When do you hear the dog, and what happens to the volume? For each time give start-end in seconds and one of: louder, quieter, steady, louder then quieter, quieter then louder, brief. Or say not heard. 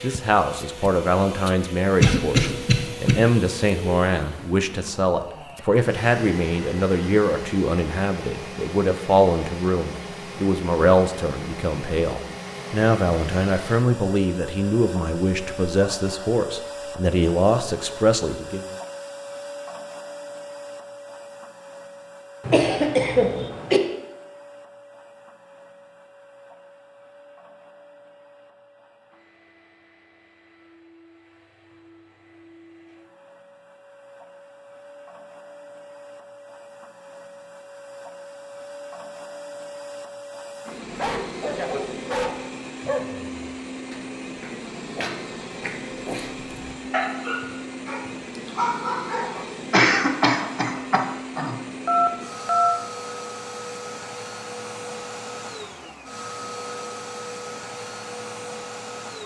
41.0-49.5 quieter then louder.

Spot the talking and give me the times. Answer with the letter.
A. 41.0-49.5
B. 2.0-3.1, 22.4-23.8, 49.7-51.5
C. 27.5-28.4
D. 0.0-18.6
D.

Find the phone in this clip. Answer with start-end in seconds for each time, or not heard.
51.9-52.8.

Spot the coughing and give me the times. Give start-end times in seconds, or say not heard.
2.0-3.1, 22.4-23.8, 49.7-51.5.